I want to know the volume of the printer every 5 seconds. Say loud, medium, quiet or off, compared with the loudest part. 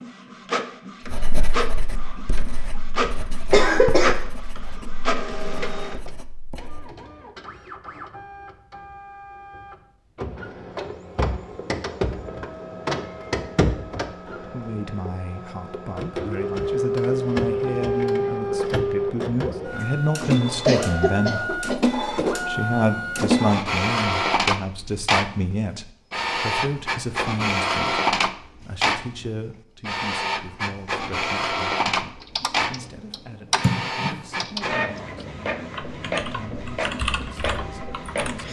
medium, medium, medium, loud, loud, loud, loud, medium.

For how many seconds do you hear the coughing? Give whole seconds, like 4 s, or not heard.
3 s.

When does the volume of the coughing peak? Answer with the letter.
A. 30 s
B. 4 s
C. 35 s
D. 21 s
B.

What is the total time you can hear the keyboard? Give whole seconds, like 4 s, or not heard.
6 s.